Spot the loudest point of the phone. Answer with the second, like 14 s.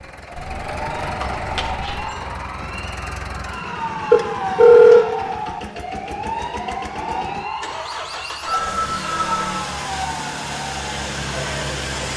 5 s.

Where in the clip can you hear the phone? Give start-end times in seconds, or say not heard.
0.3-2.0, 4.1-5.0, 8.4-9.7.